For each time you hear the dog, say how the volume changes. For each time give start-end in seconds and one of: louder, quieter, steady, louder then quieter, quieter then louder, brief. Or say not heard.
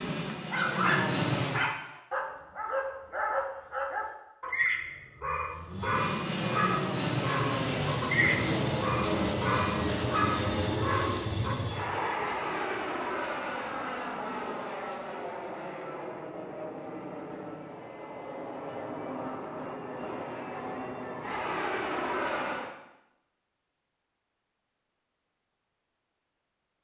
0.3-11.6 steady.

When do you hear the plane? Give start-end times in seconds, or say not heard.
0.0-1.6, 5.7-22.7.